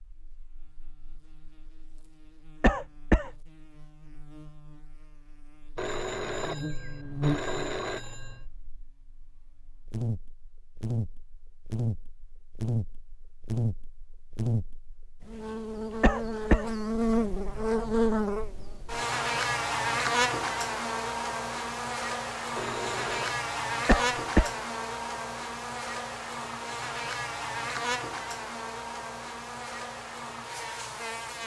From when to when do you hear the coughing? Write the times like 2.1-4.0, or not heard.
2.6-3.3, 16.0-16.7, 23.9-24.6.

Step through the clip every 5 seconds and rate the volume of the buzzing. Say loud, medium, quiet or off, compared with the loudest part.
quiet, medium, medium, loud, loud, medium, medium.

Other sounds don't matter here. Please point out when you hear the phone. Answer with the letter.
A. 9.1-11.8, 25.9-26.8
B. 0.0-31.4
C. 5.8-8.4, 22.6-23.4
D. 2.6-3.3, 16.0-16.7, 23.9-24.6
C.